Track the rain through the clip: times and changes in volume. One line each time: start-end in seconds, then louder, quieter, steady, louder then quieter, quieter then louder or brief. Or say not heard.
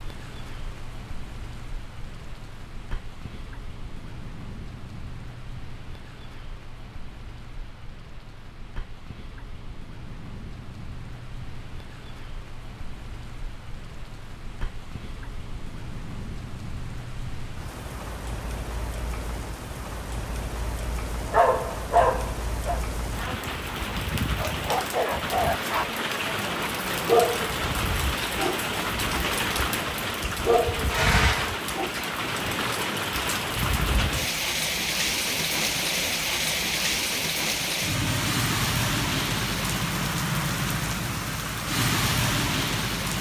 0.0-43.1 louder.